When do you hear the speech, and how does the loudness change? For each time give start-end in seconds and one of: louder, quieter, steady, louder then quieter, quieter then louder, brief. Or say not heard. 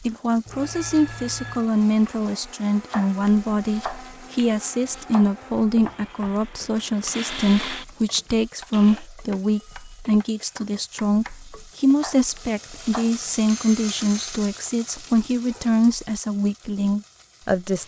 0.0-17.8 steady.